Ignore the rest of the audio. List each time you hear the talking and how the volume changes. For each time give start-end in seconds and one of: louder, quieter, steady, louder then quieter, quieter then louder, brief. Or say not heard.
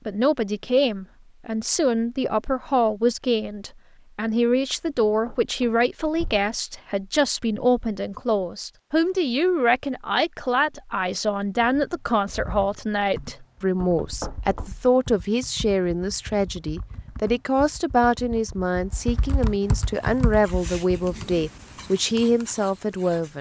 0.1-23.3 steady.